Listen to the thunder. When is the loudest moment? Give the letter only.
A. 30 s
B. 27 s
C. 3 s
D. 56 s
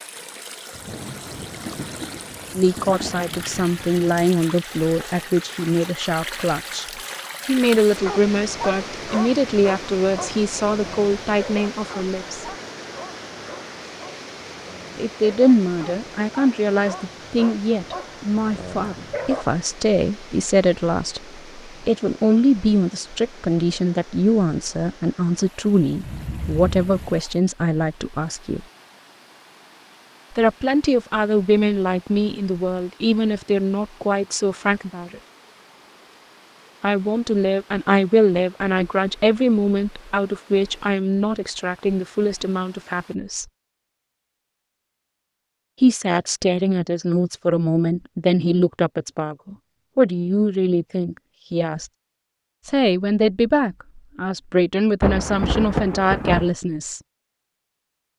D.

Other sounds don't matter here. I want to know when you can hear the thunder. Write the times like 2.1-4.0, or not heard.
0.7-4.3, 26.0-27.1, 55.0-56.5.